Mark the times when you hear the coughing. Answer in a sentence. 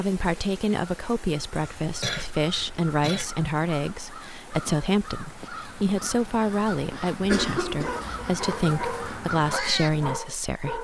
The coughing can be heard from 1.5 to 3.2 s and from 7.2 to 8.2 s.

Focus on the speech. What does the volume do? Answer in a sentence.
The loudness of the speech stays about the same.